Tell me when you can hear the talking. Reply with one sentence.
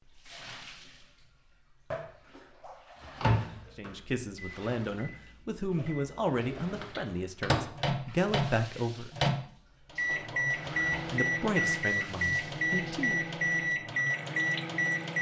You can hear the talking from 3.8 to 9.1 s and from 11.1 to 13.3 s.